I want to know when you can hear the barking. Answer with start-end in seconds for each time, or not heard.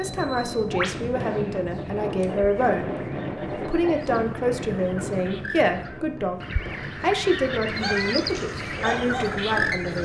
7.8-10.0.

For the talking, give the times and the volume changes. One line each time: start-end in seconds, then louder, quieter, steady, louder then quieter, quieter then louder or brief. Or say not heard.
0.0-3.0 brief
3.6-10.0 steady.